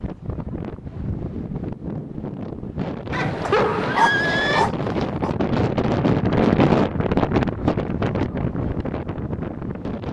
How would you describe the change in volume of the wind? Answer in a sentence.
The loudness of the wind goes up, then down.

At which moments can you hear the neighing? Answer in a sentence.
You can hear the neighing from 3.1 to 4.7 s.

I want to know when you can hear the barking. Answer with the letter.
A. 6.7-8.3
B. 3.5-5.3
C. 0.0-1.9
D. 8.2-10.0
B.